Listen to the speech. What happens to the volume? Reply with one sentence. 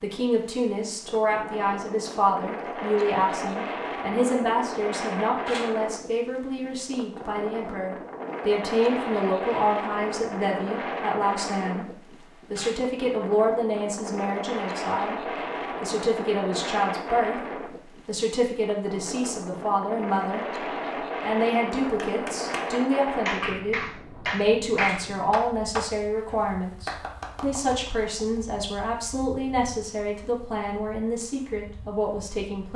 The loudness of the speech stays about the same.